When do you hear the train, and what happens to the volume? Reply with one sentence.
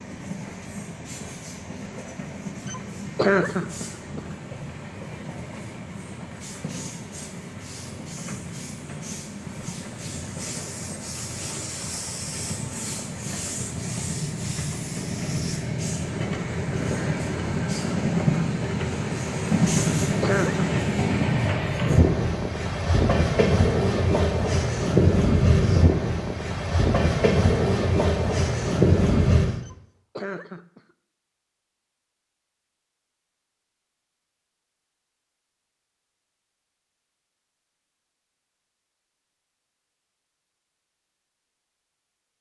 The train can be heard from 0.0 to 29.6 s, getting louder.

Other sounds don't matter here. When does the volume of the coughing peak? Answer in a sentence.
The volume of the coughing peaks at 3 seconds.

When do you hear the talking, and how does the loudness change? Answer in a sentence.
You can't hear the talking here.